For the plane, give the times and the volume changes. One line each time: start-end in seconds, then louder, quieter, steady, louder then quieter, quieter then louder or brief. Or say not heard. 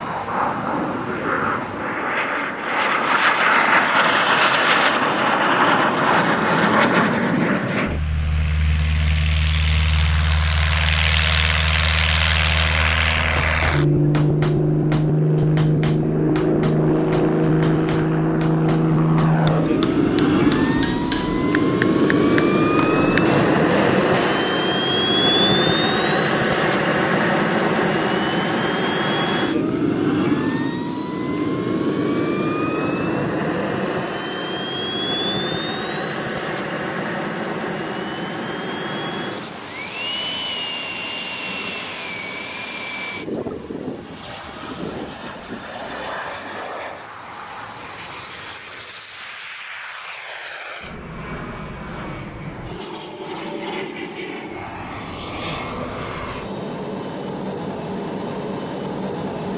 0.0-59.5 quieter.